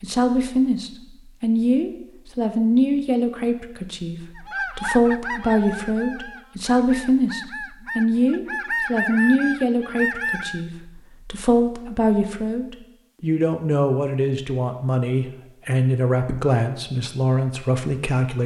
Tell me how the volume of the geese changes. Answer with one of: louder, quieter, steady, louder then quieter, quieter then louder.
quieter then louder.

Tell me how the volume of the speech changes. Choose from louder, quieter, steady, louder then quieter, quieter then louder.
steady.